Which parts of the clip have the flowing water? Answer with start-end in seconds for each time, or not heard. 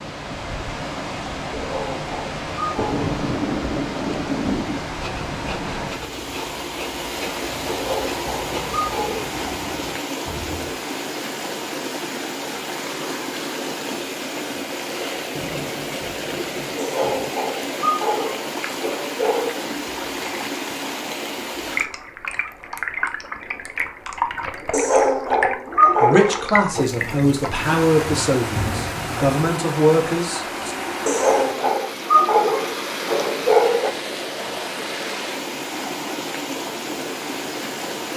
0.0-38.1.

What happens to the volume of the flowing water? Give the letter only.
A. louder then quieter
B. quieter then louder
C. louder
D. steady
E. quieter
D.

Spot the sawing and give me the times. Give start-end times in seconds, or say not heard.
4.8-10.8.